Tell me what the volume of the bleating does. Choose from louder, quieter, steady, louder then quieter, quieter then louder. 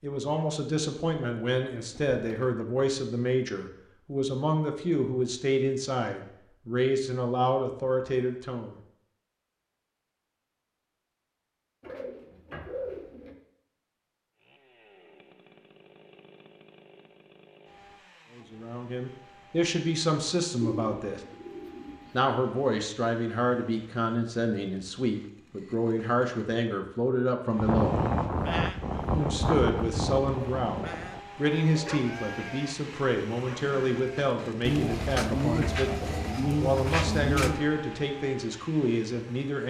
quieter.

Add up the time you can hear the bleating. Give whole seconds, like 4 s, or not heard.
7 s.